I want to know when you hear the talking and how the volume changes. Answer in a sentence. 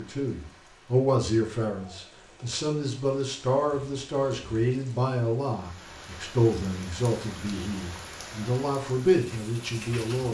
You can hear the talking from 0.0 to 10.2 s, at a steady volume.